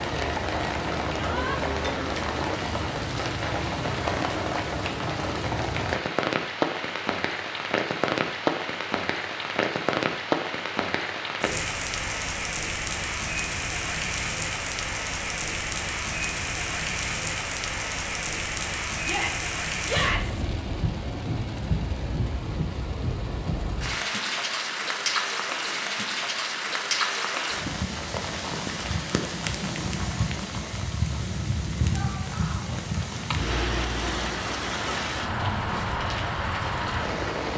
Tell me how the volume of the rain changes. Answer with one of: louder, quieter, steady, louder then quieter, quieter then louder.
steady.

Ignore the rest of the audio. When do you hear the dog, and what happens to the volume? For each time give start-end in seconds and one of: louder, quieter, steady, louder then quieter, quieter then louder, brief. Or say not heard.
not heard.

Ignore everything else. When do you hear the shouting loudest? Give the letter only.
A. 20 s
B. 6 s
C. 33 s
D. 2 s
A.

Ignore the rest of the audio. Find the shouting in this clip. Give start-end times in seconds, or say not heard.
1.1-1.6, 19.0-20.4, 31.9-32.8.